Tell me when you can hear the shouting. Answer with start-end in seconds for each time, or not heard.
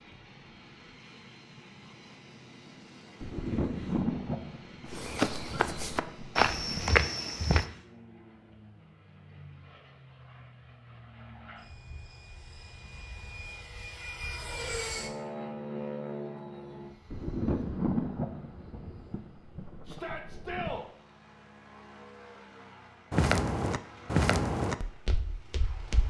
19.9-20.9.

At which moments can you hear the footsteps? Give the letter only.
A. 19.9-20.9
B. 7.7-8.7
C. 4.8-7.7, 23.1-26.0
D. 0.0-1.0
C.